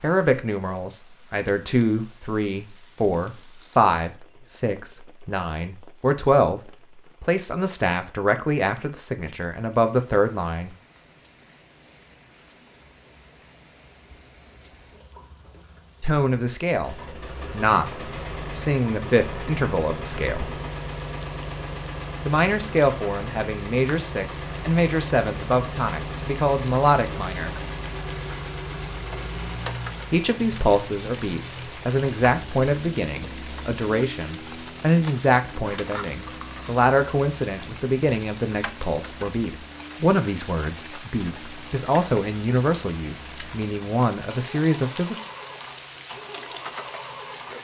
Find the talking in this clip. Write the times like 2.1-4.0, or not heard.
0.0-10.8, 16.0-20.6, 22.2-27.6, 30.1-45.1.